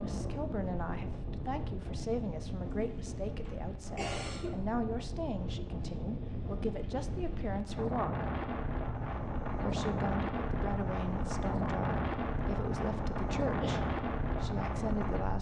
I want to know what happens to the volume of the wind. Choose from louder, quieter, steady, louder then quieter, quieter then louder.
louder.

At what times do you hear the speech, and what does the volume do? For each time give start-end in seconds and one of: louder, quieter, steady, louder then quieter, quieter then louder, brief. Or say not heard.
0.0-8.2 steady
9.5-15.3 steady.